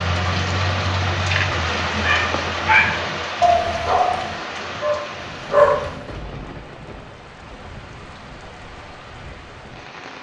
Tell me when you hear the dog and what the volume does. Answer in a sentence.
The dog can be heard from 2.0 to 6.0 s, getting quieter.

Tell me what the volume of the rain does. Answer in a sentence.
The volume of the rain goes down.